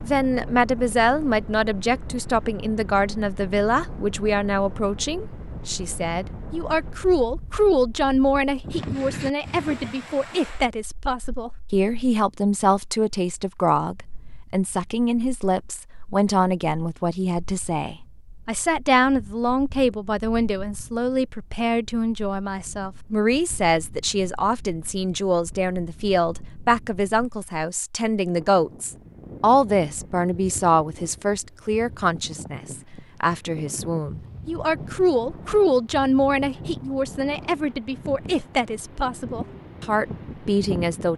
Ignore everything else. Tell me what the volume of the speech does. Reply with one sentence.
The loudness of the speech stays about the same.